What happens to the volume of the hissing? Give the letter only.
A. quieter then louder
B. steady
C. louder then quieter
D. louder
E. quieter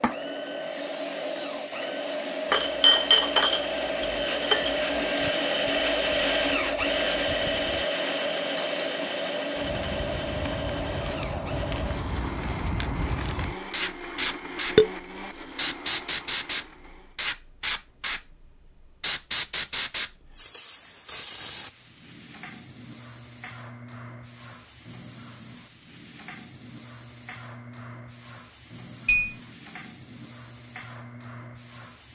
C.